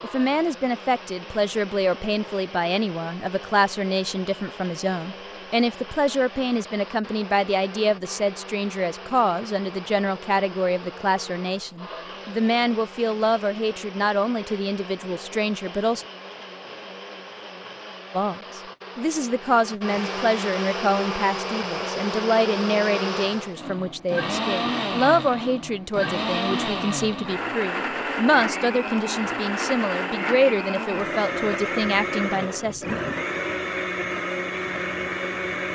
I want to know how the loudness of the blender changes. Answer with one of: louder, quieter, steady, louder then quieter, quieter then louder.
louder.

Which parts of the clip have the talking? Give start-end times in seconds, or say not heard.
0.0-16.1, 18.1-32.9.